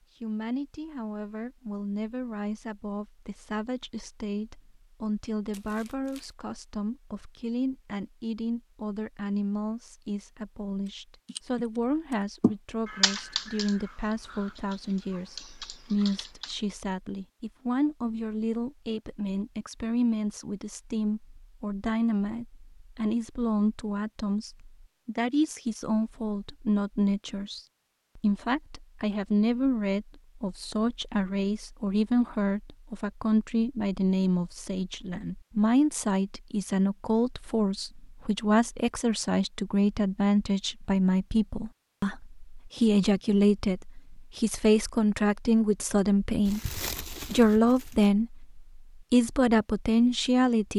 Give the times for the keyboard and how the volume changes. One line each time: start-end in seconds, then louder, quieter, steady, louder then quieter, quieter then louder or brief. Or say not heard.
11.2-16.6 quieter then louder.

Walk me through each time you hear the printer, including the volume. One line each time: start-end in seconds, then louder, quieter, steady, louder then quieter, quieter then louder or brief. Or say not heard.
not heard.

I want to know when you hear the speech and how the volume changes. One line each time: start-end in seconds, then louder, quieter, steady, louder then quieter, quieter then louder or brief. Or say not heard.
0.2-50.7 louder.